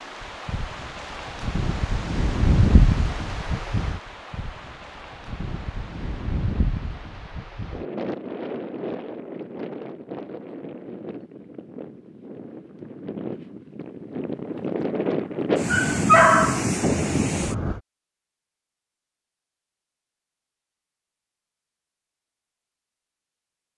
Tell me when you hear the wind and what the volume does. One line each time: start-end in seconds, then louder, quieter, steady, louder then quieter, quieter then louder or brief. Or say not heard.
0.0-17.8 quieter then louder.